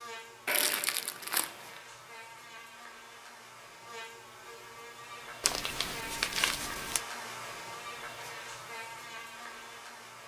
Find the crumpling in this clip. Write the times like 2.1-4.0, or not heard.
0.5-1.8, 5.4-7.0.